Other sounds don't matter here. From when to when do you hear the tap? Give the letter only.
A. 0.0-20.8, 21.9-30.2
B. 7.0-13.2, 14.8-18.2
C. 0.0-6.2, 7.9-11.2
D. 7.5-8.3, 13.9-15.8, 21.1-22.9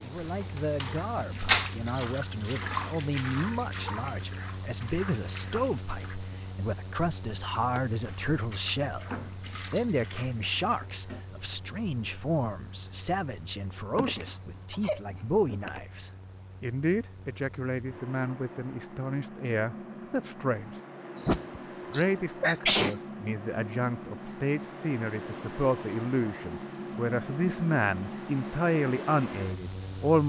C.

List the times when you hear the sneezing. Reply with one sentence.
The sneezing can be heard from 7.5 to 8.3 s, from 13.9 to 15.8 s and from 21.1 to 22.9 s.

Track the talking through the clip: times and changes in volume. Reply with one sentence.
You can hear the talking from 0.0 to 20.8 s, at a steady volume; and from 21.9 to 30.2 s, getting louder.